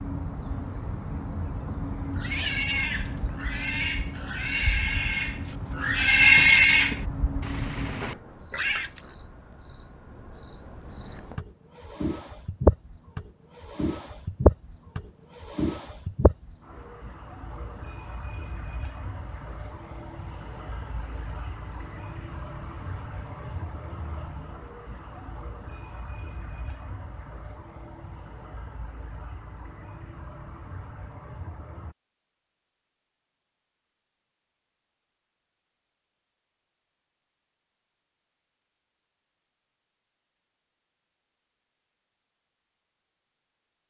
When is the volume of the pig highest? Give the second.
6 s.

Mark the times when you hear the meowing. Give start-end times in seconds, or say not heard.
not heard.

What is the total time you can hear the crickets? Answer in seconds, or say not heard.
32 s.